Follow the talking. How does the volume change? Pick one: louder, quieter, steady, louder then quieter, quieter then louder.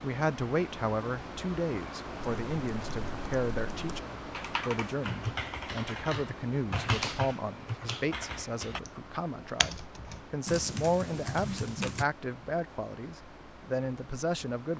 steady.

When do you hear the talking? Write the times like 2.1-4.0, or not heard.
0.0-14.7.